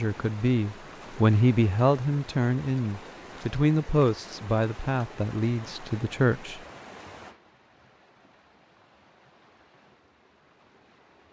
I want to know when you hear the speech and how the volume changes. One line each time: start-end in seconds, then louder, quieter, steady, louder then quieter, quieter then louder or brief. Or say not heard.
0.0-6.6 quieter.